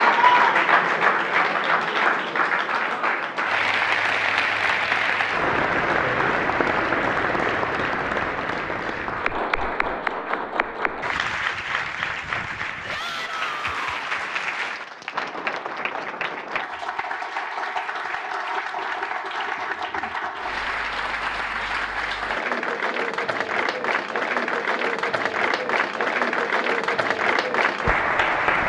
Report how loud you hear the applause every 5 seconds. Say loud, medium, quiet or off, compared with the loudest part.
loud, loud, medium, medium, medium, loud.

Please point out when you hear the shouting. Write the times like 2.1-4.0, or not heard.
12.9-14.0.